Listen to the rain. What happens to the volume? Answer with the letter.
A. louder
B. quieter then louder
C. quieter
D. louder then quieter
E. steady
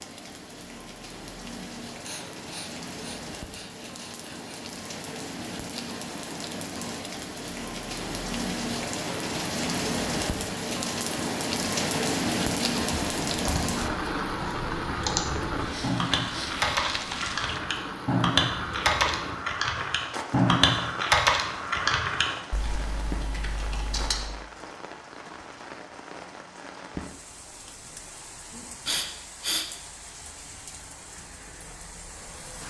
D.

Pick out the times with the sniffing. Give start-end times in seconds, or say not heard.
2.0-4.5, 15.7-16.6, 28.5-29.7.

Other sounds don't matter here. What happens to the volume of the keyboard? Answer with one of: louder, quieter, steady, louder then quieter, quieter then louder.
louder then quieter.